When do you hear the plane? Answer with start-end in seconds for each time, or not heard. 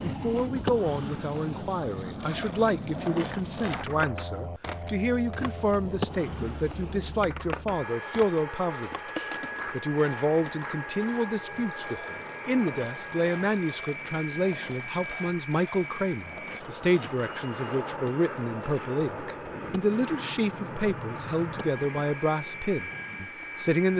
0.0-23.9.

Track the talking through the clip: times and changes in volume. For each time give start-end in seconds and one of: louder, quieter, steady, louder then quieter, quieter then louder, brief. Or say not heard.
0.0-23.9 steady.